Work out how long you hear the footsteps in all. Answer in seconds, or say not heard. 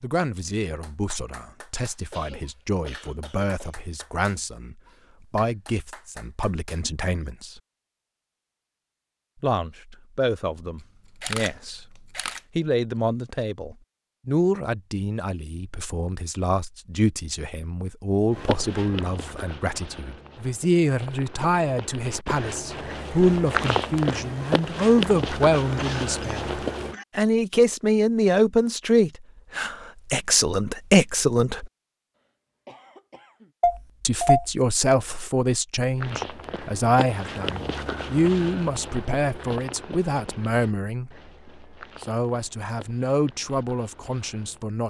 17 s.